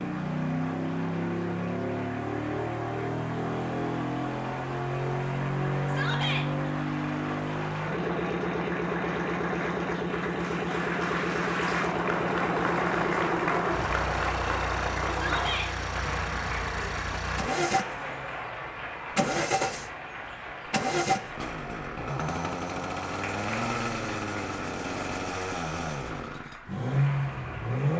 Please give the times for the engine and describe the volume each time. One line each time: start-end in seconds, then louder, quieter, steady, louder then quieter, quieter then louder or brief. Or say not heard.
0.0-27.9 steady.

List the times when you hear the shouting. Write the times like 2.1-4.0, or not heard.
5.8-6.5, 15.1-15.7.